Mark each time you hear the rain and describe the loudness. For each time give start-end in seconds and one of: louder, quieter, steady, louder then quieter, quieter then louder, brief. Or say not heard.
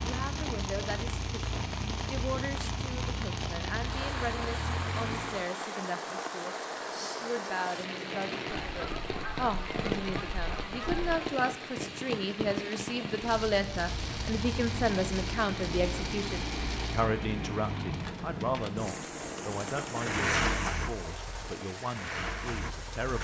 0.0-23.1 steady.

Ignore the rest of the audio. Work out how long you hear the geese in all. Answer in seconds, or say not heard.
3 s.